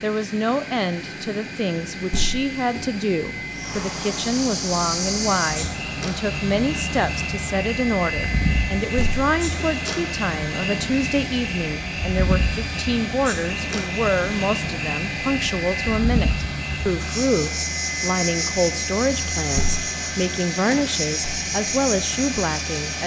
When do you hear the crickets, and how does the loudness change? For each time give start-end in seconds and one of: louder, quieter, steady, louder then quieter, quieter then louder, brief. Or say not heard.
3.5-23.0 steady.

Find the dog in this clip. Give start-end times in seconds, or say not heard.
not heard.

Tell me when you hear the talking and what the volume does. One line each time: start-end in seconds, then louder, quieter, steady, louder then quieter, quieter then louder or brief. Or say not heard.
0.0-23.0 steady.